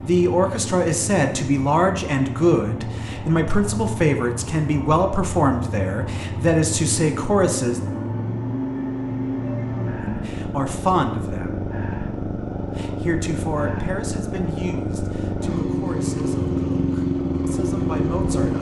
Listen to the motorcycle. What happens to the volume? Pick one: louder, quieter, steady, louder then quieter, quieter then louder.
louder.